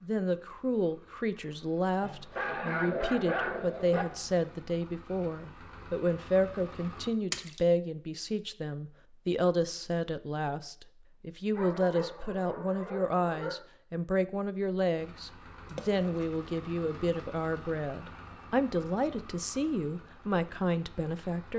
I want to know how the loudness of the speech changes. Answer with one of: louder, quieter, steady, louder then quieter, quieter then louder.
steady.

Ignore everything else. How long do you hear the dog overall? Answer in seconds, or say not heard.
4 s.